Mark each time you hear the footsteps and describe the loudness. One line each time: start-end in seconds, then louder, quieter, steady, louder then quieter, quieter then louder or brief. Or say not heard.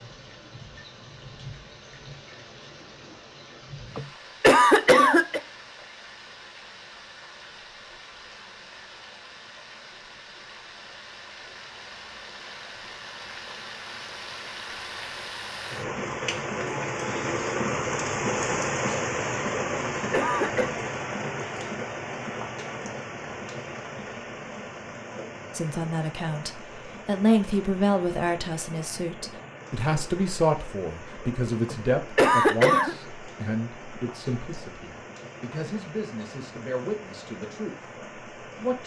not heard.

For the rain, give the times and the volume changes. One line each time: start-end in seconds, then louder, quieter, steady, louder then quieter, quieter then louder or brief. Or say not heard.
0.0-38.8 louder then quieter.